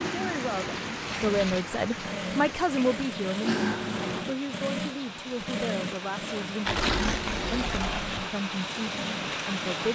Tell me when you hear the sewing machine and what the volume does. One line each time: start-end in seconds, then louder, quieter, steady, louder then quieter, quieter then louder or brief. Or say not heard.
0.0-9.9 louder then quieter.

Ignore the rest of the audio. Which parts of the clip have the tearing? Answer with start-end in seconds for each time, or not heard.
0.8-1.8, 6.7-8.3.